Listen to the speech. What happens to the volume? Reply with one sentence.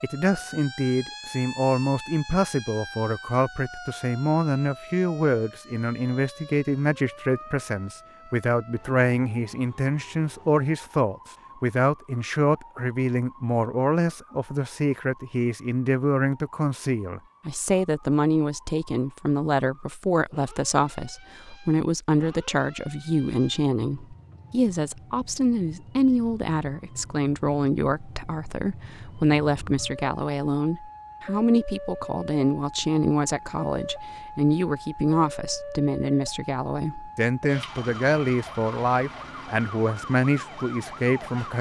The volume of the speech stays about the same.